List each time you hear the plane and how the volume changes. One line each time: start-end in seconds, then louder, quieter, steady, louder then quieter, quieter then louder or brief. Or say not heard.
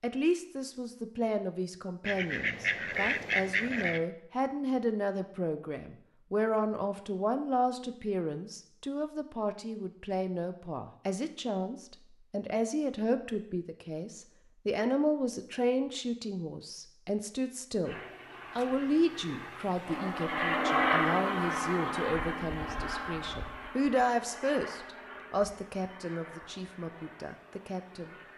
17.9-28.3 louder then quieter.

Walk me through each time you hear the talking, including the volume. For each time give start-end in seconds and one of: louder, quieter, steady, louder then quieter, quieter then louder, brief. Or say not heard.
0.0-28.1 steady.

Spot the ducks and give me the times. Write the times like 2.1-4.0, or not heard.
2.0-4.0.